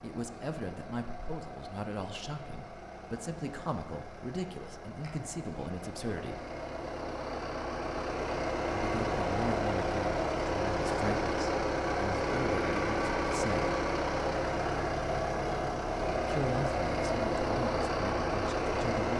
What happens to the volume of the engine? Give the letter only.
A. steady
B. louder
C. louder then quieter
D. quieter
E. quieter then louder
B.